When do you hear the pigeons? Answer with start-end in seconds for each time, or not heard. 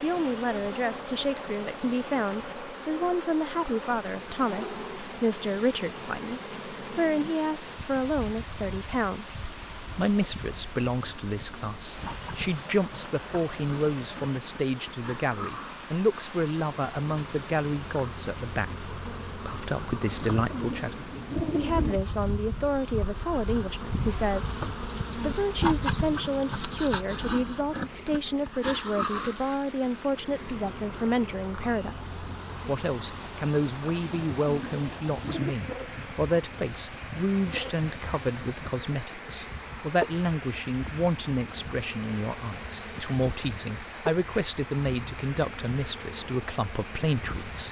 20.1-22.0, 34.0-35.5.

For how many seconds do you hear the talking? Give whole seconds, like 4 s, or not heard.
47 s.